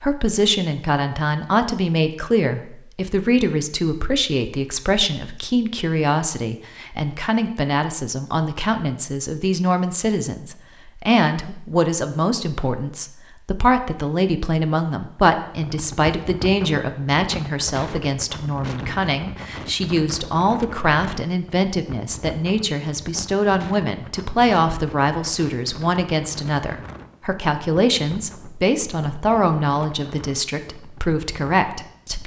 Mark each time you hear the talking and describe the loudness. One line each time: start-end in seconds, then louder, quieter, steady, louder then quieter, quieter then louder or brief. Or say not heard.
0.0-32.2 steady.